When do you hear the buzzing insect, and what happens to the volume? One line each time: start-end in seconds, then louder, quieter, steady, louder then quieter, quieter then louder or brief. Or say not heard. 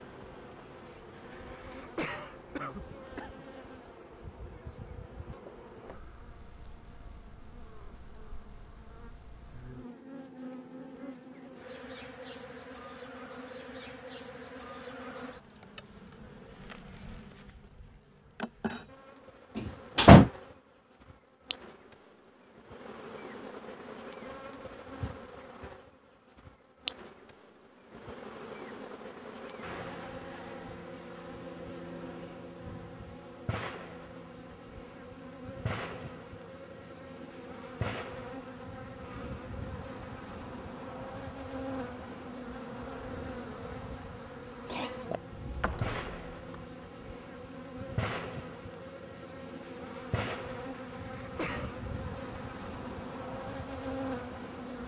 0.0-54.8 louder.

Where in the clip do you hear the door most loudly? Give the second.
20 s.